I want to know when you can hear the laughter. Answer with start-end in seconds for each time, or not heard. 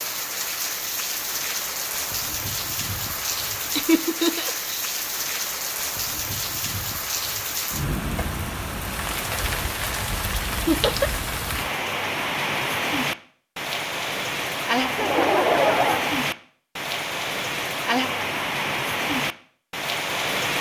3.8-4.7, 10.7-11.1, 14.9-16.1.